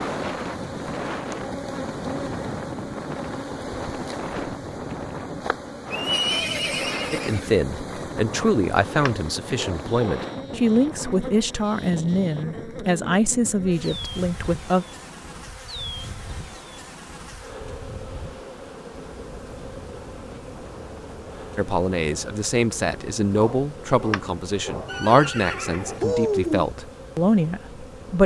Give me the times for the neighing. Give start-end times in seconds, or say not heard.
5.9-7.5, 24.9-26.7.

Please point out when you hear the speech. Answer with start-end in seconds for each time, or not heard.
7.1-14.8, 21.6-28.2.